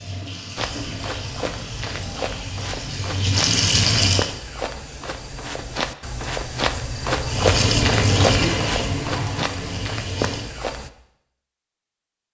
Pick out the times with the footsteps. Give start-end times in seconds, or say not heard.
0.6-10.9.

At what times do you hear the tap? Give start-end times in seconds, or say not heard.
0.0-4.3, 7.2-10.6.